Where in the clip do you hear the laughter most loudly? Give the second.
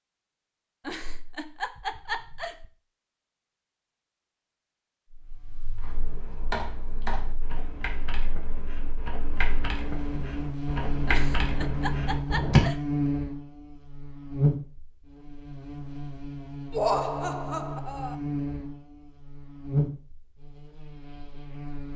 17 s.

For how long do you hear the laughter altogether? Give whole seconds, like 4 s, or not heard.
5 s.